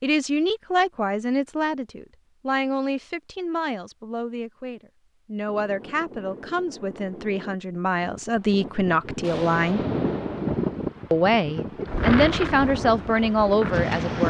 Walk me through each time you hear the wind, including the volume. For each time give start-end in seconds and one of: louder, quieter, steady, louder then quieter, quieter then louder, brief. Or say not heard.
5.5-14.2 louder.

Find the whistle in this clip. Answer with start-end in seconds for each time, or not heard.
not heard.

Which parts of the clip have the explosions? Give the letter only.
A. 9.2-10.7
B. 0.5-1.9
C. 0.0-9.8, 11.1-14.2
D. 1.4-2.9
A.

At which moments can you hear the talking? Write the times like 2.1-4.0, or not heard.
0.0-9.8, 11.1-14.2.